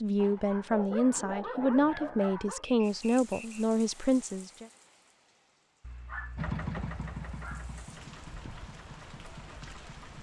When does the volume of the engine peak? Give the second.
7 s.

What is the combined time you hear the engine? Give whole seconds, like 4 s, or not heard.
4 s.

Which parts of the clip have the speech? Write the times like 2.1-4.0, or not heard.
0.0-4.7.